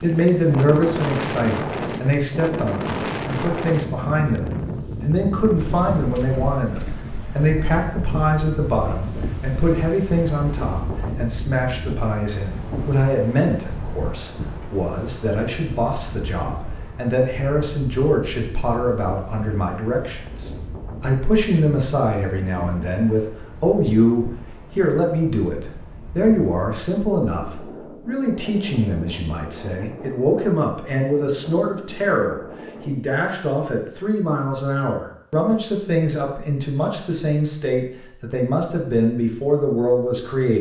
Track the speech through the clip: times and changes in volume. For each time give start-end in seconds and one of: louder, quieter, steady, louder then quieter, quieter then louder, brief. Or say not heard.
0.0-40.5 steady.